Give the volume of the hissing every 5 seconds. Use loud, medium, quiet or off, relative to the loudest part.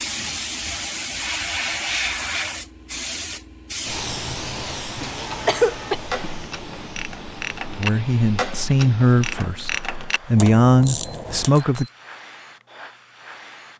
loud, medium, quiet.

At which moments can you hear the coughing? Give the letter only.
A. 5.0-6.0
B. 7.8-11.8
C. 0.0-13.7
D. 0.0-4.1
A.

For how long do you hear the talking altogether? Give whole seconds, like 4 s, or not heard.
4 s.